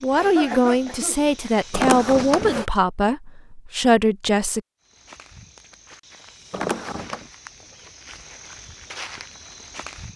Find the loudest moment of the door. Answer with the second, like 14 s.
2 s.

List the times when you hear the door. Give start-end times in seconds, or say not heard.
1.7-2.6, 6.5-7.2.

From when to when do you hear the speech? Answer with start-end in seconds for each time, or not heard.
0.0-4.6.